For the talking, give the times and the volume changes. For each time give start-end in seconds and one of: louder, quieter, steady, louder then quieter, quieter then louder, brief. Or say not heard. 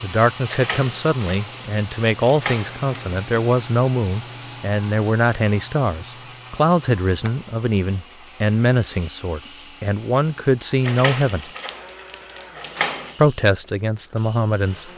0.0-11.4 steady
13.2-14.9 brief.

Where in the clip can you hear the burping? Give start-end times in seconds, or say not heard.
not heard.